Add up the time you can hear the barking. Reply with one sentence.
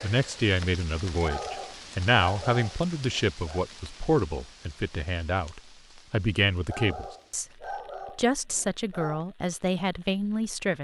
You can hear the barking for 5 seconds altogether.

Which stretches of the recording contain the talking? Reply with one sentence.
The talking can be heard from 0.0 to 10.8 s.